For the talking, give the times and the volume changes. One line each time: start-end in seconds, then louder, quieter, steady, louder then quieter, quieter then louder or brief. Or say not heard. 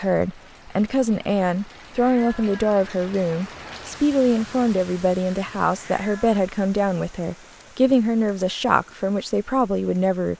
0.0-10.3 steady.